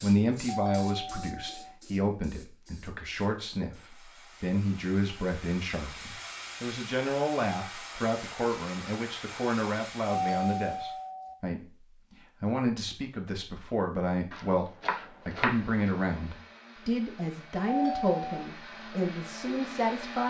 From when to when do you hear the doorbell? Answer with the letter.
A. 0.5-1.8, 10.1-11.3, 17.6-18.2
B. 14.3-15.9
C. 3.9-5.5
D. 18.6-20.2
A.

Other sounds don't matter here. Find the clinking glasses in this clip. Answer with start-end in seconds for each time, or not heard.
not heard.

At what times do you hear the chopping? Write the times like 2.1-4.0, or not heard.
14.3-15.9.